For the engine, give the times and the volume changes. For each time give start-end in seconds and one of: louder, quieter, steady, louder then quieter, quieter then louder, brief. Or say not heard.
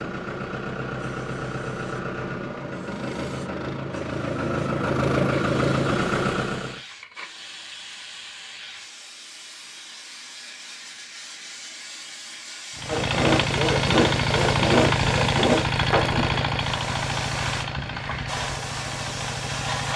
0.0-6.8 louder
12.8-19.9 quieter.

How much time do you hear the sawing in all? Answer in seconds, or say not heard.
3 s.